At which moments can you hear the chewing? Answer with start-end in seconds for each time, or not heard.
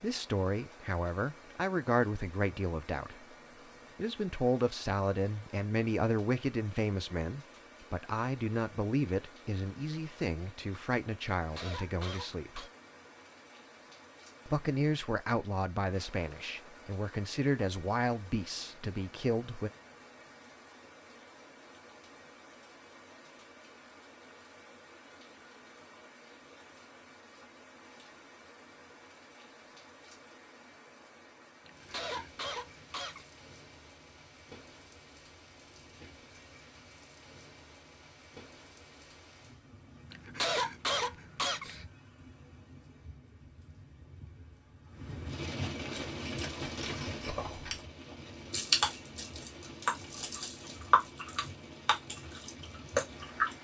46.1-47.8, 48.5-53.5.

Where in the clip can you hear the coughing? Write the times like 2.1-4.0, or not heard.
11.3-12.7, 31.6-33.2, 40.1-41.9.